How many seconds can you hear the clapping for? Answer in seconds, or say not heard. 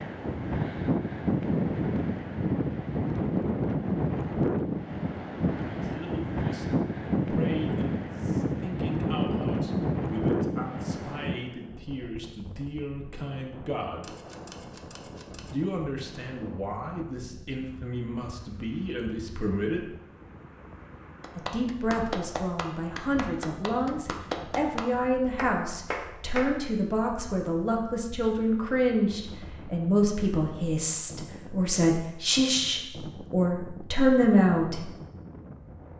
5 s.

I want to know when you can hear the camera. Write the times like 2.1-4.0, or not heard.
14.0-15.6.